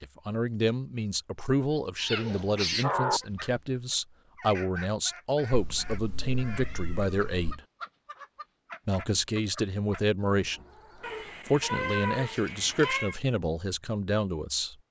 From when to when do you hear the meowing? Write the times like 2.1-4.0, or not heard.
1.9-3.2, 5.5-7.5, 11.0-13.2.